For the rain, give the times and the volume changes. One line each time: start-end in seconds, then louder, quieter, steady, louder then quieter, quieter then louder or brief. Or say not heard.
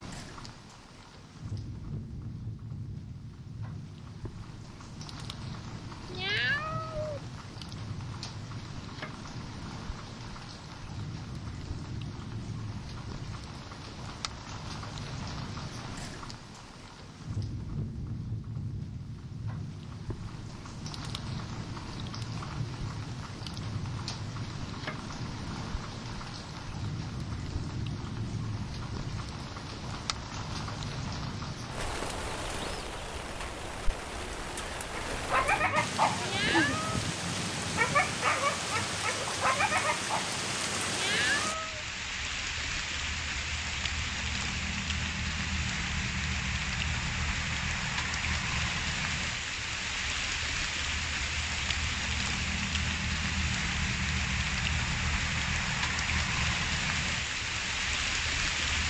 0.0-58.8 louder.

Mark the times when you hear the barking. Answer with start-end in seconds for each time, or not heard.
34.9-40.4.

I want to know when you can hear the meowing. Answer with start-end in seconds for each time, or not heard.
6.0-7.2, 36.2-37.0, 40.9-41.9.